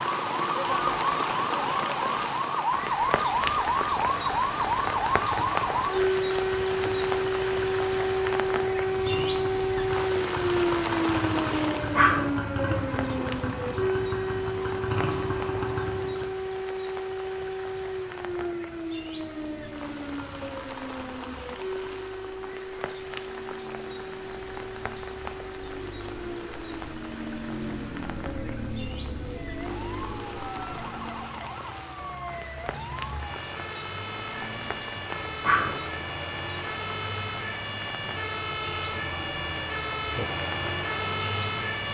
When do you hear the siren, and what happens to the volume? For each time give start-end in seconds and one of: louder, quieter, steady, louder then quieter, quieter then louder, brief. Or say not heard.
0.0-41.8 quieter then louder.